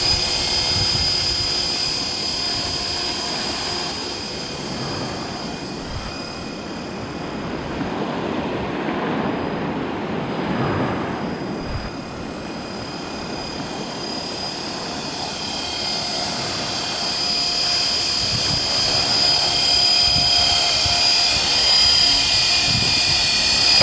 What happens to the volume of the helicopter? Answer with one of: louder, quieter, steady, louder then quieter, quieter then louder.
quieter then louder.